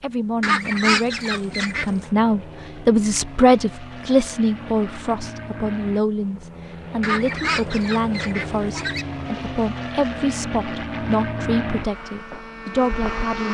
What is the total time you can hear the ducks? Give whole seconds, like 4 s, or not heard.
4 s.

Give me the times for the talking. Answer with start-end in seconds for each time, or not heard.
0.0-13.4.